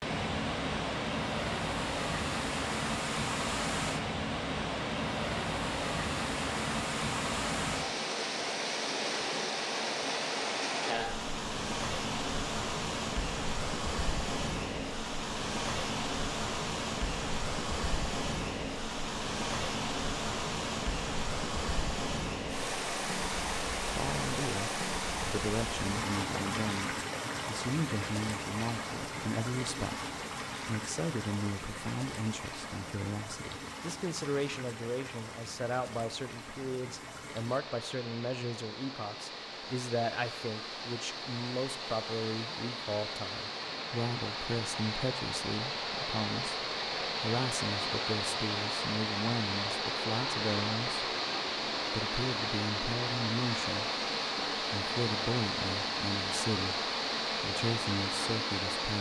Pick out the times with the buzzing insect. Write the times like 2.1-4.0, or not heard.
not heard.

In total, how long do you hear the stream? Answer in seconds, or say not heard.
59 s.